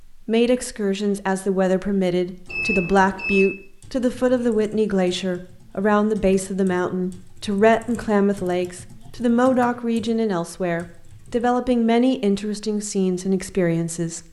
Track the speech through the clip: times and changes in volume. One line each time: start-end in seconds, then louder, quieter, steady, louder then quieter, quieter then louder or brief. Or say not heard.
0.0-14.2 steady.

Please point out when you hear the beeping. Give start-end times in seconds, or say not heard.
2.5-3.5.